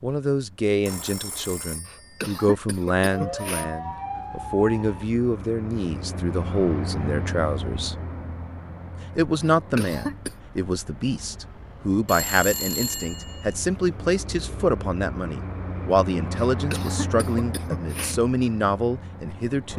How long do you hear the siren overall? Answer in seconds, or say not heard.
2 s.